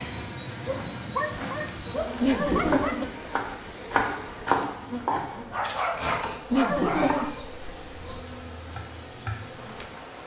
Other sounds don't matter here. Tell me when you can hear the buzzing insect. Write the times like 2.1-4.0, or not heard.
0.0-10.2.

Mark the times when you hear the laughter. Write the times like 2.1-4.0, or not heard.
2.2-3.0, 6.5-8.2.